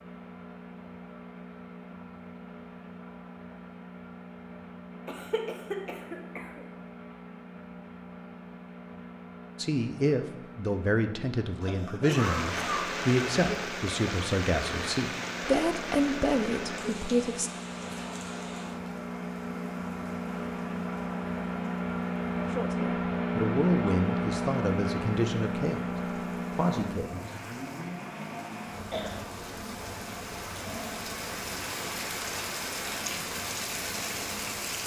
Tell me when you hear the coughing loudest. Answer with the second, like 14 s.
12 s.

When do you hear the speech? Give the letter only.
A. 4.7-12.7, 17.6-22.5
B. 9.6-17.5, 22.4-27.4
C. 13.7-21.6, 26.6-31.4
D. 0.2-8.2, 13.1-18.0
B.